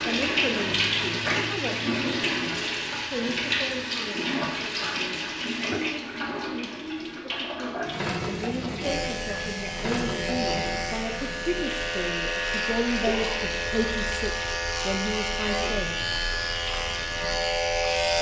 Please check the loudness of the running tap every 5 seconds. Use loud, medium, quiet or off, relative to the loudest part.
loud, medium, medium, quiet.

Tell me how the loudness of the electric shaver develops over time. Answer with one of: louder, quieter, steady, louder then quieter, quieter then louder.
steady.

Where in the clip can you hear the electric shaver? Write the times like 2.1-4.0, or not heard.
8.8-18.1.